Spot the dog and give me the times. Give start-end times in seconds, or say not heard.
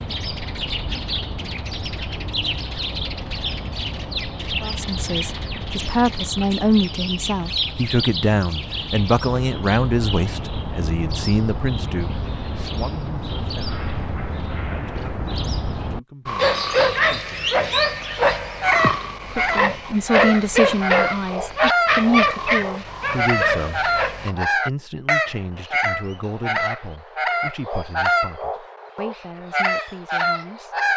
16.2-24.3.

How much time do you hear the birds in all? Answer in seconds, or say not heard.
31 s.